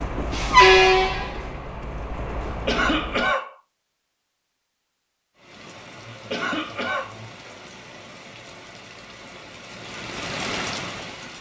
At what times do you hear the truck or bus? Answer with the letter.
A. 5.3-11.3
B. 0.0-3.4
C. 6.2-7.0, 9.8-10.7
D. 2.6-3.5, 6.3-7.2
B.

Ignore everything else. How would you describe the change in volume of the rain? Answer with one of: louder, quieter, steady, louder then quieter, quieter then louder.
louder.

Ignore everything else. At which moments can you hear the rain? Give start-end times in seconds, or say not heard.
5.3-11.3.